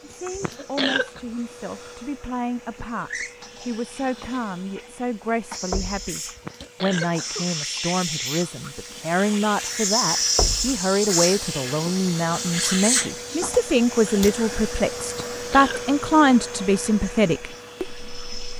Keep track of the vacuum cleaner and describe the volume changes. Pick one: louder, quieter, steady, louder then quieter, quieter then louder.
louder then quieter.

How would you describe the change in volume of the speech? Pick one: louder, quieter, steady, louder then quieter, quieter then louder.
louder.